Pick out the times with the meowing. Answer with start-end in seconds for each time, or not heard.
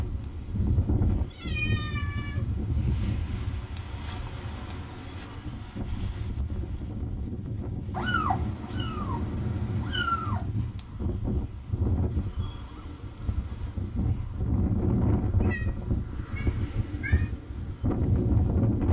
1.3-2.4, 7.9-10.4, 15.4-17.3.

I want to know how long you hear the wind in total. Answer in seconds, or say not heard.
19 s.